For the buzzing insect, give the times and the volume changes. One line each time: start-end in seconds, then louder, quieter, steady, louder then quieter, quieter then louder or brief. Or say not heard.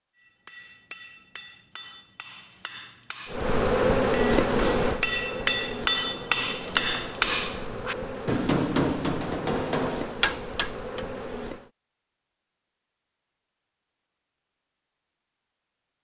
3.2-11.7 quieter.